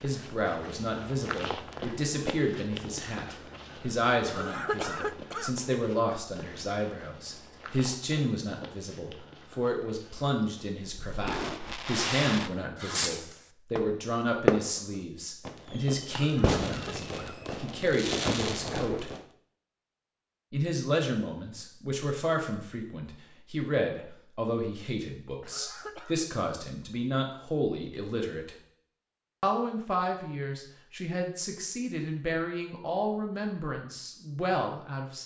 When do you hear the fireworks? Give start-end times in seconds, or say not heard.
11.1-14.8, 15.4-19.2.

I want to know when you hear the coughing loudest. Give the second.
5 s.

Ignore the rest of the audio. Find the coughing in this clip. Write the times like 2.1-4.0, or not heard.
4.2-5.5, 16.1-17.4, 25.4-26.2.